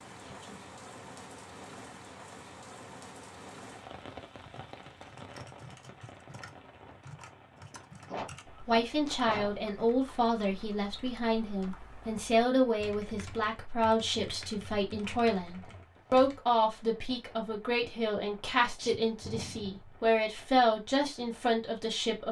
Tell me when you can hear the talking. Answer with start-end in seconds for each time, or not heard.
8.6-22.2.